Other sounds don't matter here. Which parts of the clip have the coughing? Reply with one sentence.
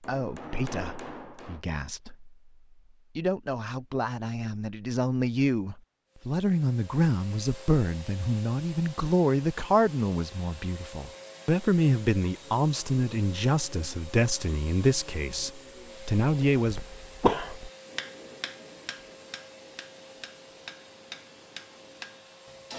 The coughing can be heard from 16.2 to 17.7 s.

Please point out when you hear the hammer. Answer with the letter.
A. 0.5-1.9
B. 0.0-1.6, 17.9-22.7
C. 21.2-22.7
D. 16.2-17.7
B.